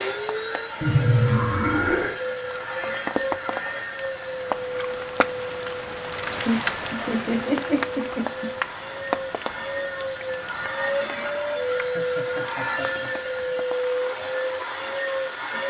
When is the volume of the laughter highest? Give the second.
1 s.